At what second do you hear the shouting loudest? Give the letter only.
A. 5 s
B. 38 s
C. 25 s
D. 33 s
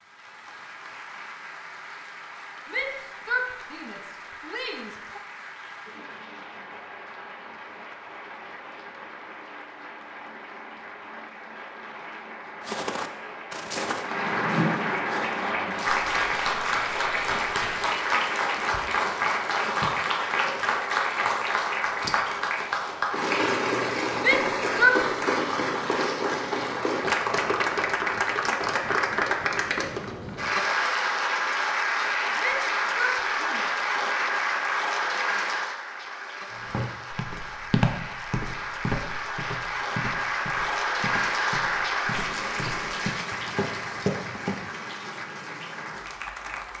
C.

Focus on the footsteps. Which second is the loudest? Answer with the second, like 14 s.
38 s.